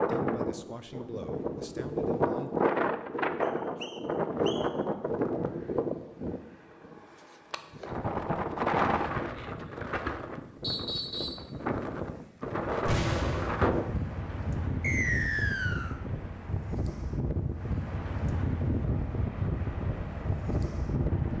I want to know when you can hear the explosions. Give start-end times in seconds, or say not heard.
12.8-13.8.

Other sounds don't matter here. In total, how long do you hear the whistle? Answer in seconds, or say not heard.
3 s.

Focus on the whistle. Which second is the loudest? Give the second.
15 s.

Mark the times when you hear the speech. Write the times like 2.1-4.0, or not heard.
0.1-2.5.